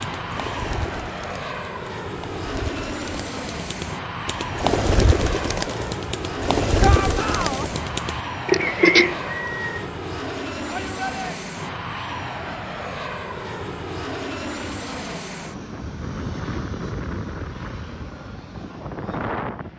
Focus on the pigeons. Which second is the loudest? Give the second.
9 s.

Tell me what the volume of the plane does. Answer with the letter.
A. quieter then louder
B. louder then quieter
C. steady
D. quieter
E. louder
C.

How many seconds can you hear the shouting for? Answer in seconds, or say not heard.
2 s.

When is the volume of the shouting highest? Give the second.
7 s.